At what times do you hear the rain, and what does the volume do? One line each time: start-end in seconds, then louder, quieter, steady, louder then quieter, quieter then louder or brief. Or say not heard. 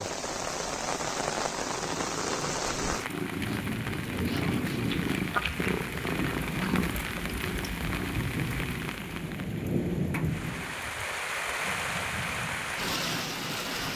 0.0-13.9 steady.